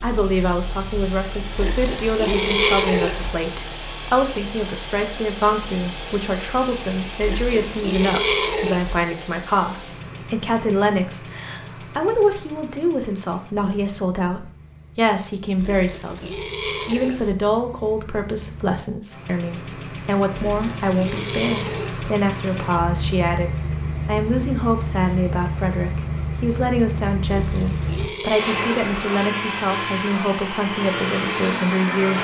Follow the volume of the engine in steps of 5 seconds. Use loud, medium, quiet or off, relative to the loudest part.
loud, loud, quiet, quiet, loud, loud, loud.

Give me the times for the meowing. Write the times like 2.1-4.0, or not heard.
not heard.